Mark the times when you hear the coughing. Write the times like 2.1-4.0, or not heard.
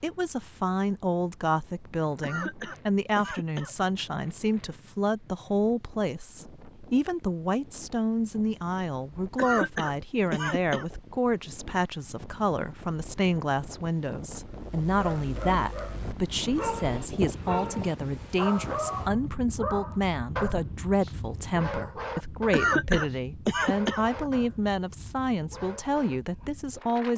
2.2-3.8, 9.3-10.8, 22.5-24.1.